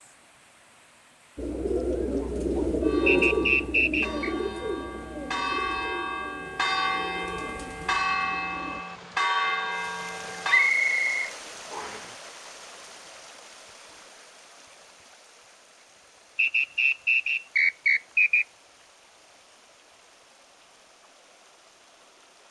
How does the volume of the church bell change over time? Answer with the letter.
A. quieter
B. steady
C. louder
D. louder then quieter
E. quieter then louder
C.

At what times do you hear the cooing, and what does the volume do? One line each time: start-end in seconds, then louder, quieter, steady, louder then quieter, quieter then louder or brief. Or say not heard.
1.4-8.8 quieter.